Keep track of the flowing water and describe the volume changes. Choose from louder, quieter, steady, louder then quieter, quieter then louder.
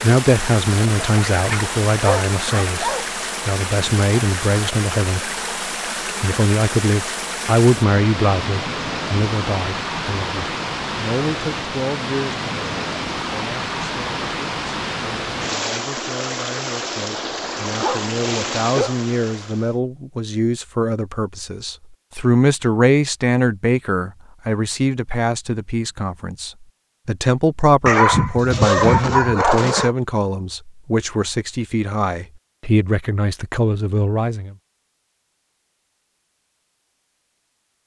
steady.